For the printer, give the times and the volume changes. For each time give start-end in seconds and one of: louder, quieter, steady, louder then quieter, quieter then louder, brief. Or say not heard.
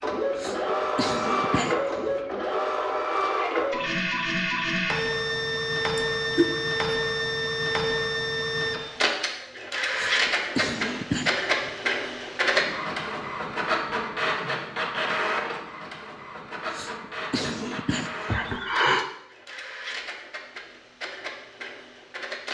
0.0-22.5 quieter.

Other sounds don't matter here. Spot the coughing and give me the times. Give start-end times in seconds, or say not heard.
0.3-2.1, 9.9-11.7, 16.7-18.5.